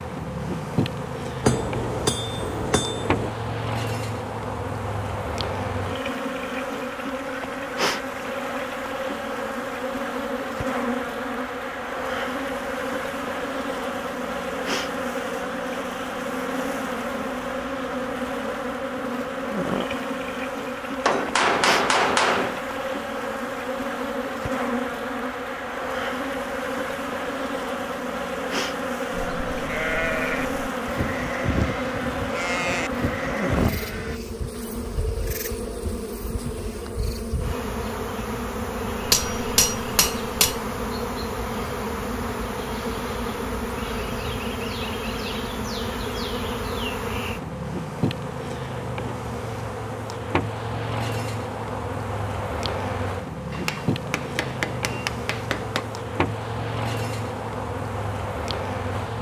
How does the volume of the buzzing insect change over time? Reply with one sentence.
The loudness of the buzzing insect stays about the same.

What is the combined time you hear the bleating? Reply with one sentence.
The bleating can be heard for 5 seconds in total.